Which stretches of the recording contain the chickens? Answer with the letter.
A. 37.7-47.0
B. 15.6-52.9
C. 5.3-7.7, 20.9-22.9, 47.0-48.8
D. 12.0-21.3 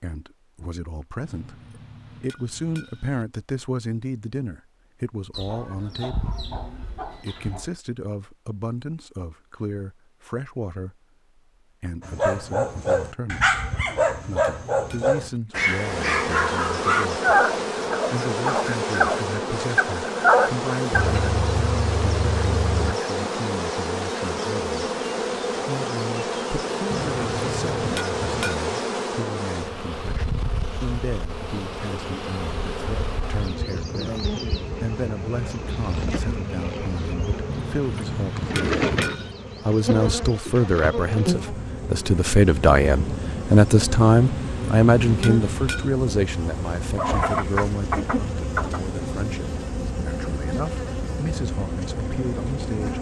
C.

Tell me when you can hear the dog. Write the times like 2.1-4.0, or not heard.
12.0-21.3.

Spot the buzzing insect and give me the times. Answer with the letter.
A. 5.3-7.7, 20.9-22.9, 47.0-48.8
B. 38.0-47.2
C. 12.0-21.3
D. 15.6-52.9
D.